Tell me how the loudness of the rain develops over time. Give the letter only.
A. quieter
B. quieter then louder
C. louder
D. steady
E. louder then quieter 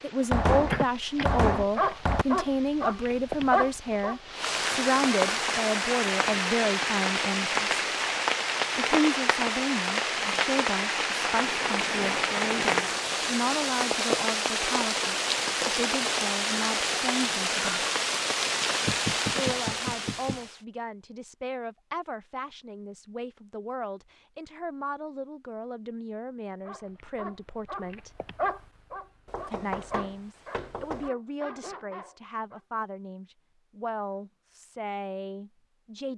C.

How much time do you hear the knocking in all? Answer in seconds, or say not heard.
5 s.